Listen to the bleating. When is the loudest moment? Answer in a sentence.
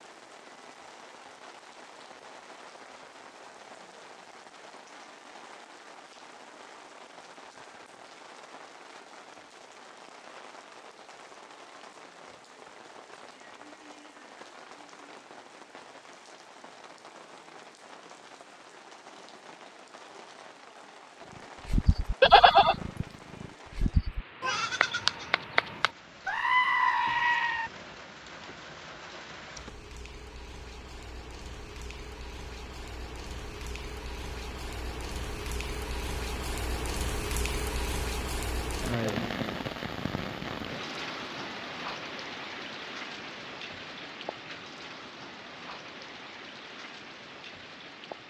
The loudest moment of the bleating is at 22 seconds.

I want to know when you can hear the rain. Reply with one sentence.
You can hear the rain from 0.0 to 48.2 s.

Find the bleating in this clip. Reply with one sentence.
The bleating can be heard from 21.6 to 27.7 s.